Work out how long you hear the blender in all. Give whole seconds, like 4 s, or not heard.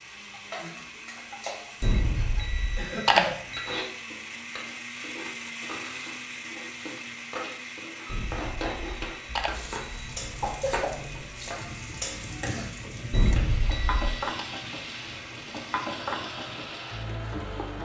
18 s.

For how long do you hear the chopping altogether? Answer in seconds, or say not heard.
5 s.